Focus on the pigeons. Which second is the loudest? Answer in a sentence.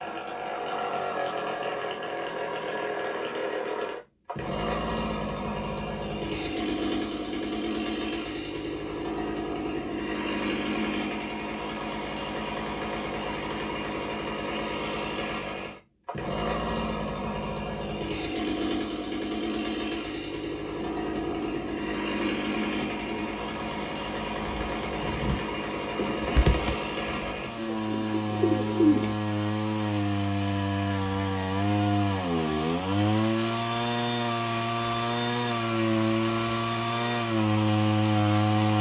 The volume of the pigeons peaks at 29 seconds.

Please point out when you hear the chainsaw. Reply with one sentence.
You can hear the chainsaw from 0.0 to 38.7 s.